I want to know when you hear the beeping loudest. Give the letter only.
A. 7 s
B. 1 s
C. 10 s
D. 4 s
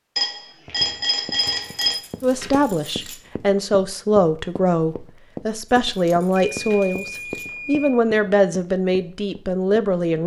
B.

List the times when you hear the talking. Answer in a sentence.
The talking can be heard from 2.2 to 10.2 s.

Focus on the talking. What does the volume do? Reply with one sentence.
The loudness of the talking stays about the same.